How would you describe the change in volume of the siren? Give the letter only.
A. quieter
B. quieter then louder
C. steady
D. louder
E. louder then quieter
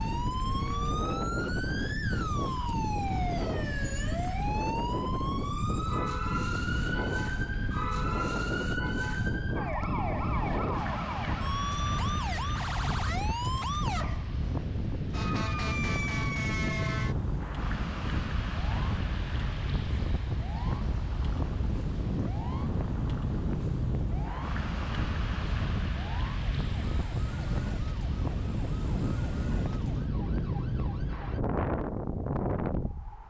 A.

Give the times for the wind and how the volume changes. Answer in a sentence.
The wind can be heard from 0.0 to 33.2 s, at a steady volume.